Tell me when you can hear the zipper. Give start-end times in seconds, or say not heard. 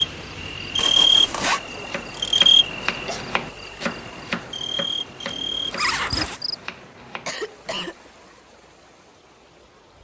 0.8-1.6, 5.2-6.4.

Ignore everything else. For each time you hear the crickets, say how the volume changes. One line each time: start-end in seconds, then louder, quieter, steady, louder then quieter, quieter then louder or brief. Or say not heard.
0.0-6.5 quieter then louder.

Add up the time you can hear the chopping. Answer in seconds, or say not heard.
6 s.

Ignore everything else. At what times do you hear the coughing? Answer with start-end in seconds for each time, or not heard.
2.4-3.2, 7.0-8.0.